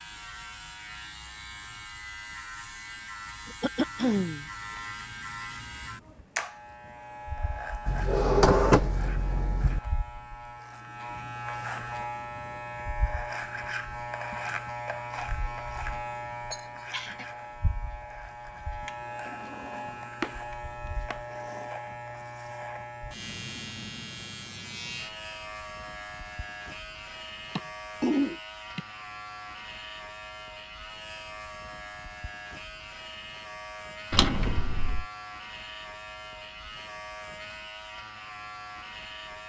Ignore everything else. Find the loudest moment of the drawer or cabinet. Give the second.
9 s.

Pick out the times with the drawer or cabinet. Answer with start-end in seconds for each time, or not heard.
7.8-9.8, 19.2-20.4, 21.1-21.7, 34.1-35.0.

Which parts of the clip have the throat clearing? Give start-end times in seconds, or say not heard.
3.5-4.5, 16.5-17.2, 27.6-28.8.